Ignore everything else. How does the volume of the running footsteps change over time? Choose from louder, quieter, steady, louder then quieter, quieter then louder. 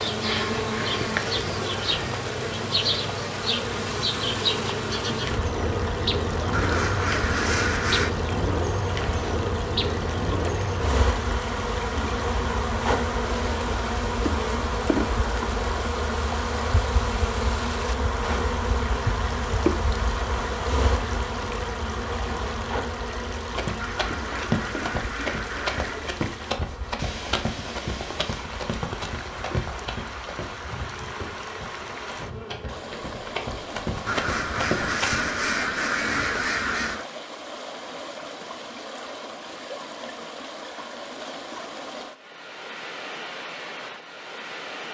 quieter then louder.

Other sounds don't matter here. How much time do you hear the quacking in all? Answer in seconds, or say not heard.
7 s.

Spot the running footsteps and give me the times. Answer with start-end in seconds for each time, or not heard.
23.5-35.4.